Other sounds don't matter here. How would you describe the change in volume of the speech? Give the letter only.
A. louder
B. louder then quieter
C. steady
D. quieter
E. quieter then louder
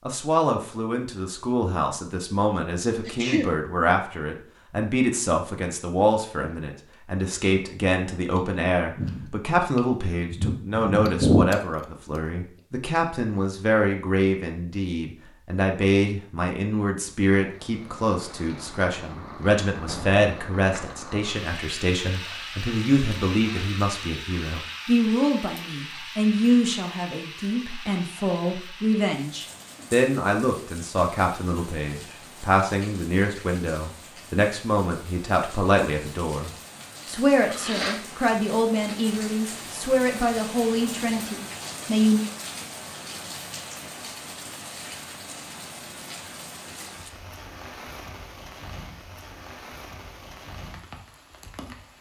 C.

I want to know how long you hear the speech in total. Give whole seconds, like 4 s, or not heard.
42 s.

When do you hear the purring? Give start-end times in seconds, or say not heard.
not heard.